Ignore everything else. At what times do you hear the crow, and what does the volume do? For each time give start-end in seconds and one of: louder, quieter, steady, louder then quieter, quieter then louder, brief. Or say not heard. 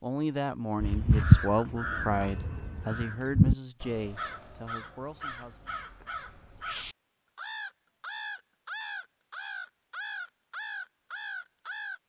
0.8-12.0 quieter.